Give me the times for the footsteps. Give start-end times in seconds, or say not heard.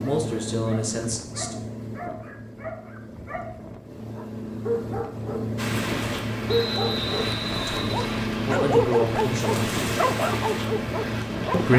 not heard.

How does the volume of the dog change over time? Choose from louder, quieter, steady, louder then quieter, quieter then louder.
louder.